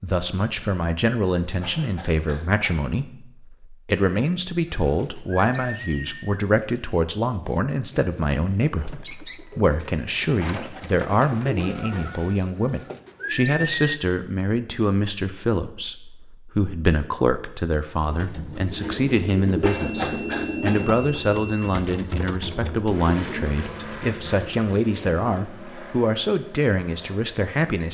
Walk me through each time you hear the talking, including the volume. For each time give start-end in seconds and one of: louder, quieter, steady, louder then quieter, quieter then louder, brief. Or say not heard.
0.0-27.8 steady.